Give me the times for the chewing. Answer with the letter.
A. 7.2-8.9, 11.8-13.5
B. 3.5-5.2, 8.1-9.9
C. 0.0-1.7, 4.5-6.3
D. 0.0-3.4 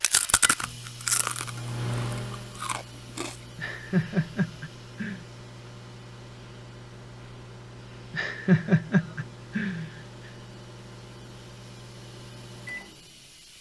D.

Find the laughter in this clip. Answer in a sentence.
You can hear the laughter from 3.5 to 5.2 s and from 8.1 to 9.9 s.